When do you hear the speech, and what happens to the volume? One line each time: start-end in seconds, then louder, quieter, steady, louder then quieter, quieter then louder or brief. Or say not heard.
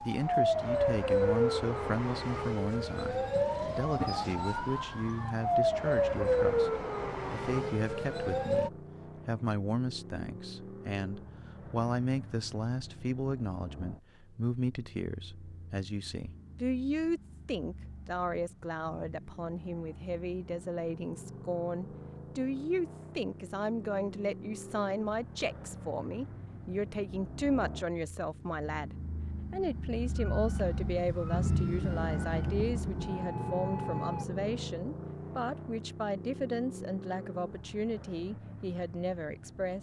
0.0-39.7 steady.